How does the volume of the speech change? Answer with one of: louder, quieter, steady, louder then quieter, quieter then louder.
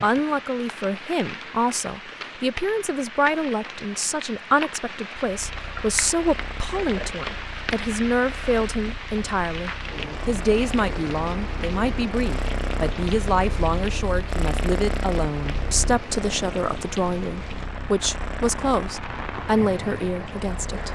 steady.